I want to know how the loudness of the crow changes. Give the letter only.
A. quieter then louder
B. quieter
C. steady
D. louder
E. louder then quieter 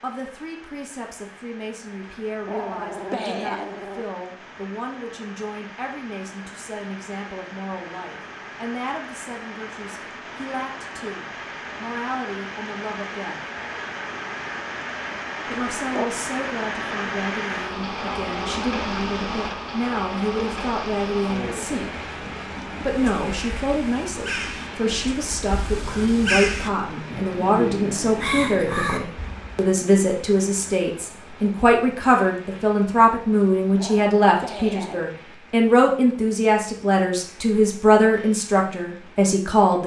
D.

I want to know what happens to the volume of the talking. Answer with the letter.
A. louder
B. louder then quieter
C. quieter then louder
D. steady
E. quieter
A.